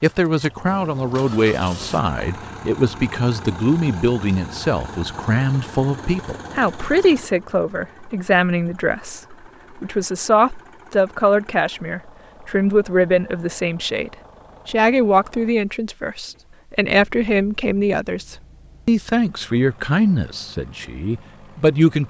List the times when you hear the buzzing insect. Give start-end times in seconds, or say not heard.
not heard.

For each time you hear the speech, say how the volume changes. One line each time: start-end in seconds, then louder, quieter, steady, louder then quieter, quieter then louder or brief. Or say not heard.
0.0-22.0 steady.